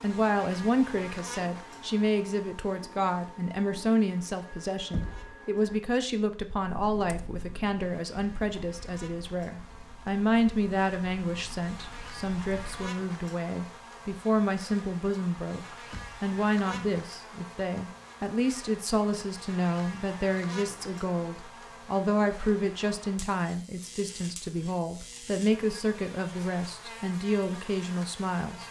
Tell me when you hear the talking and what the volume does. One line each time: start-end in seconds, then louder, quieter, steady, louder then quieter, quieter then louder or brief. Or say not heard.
0.0-28.6 steady.